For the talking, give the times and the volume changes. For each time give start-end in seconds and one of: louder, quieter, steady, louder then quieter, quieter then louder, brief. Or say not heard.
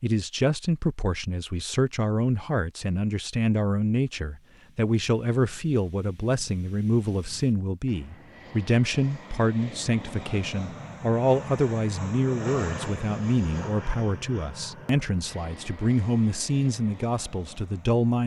0.0-18.2 steady.